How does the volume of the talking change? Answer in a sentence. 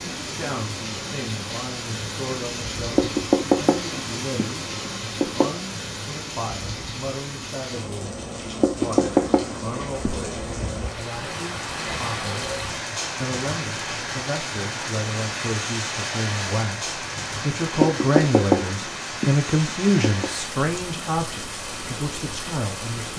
The loudness of the talking goes up.